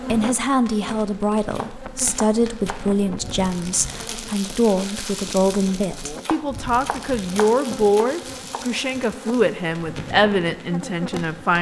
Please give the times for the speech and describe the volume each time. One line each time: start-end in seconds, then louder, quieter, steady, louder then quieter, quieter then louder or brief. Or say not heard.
0.1-11.5 steady.